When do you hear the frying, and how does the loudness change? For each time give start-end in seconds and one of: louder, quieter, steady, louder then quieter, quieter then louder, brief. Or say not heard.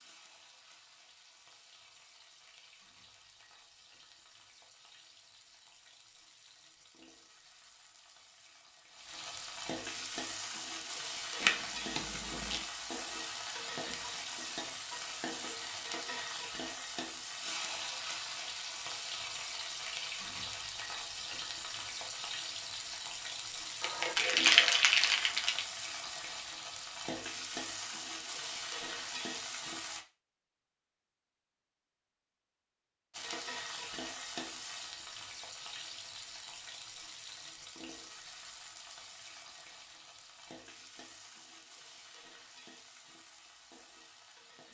0.0-30.1 louder
33.1-44.6 quieter.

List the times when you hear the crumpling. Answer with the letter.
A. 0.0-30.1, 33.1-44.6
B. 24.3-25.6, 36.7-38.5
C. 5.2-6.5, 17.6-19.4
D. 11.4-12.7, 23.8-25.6
D.